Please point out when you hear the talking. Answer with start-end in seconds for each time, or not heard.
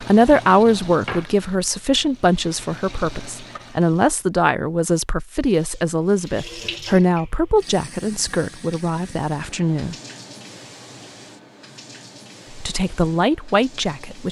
0.0-9.9, 12.5-14.2.